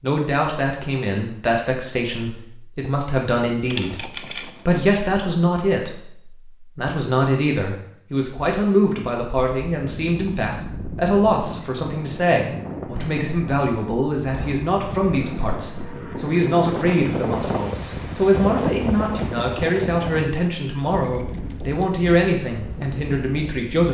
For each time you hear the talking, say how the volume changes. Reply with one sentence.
The talking can be heard from 0.0 to 23.8 s, at a steady volume.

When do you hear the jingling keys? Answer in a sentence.
The jingling keys can be heard from 3.7 to 4.8 s and from 20.2 to 21.9 s.